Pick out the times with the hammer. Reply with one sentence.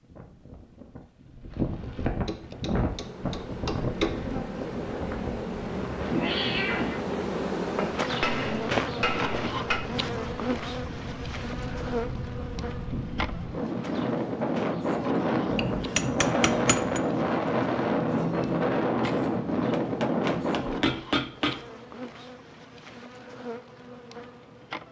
You can hear the hammer from 2.2 to 4.2 s, from 7.8 to 9.8 s, from 15.5 to 17.0 s and from 19.7 to 21.6 s.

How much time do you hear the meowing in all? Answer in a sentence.
The meowing can be heard for 2 seconds in total.